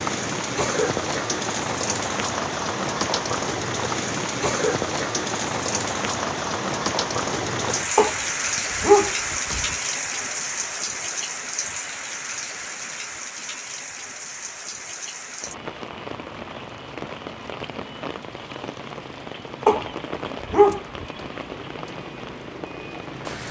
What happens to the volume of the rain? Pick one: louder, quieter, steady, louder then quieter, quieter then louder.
quieter.